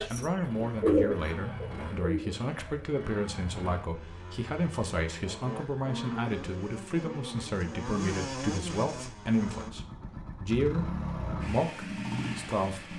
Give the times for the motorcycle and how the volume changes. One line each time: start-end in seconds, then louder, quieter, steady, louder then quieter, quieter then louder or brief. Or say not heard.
0.0-12.9 louder.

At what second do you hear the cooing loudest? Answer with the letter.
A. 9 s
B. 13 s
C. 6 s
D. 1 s
D.